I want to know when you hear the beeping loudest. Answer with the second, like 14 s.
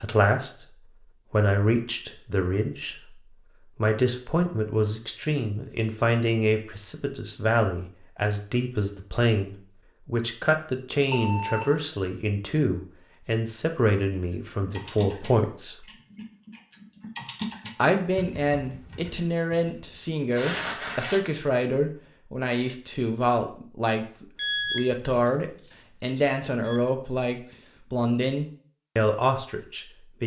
25 s.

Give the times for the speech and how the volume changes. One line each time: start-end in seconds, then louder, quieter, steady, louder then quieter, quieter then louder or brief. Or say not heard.
0.0-0.7 brief
1.3-15.8 steady
17.8-30.2 steady.